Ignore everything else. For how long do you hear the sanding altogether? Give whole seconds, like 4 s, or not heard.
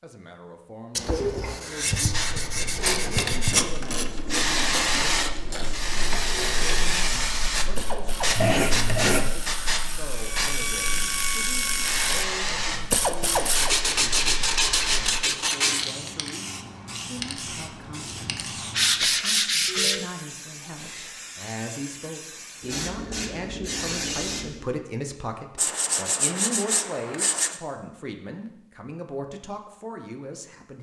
9 s.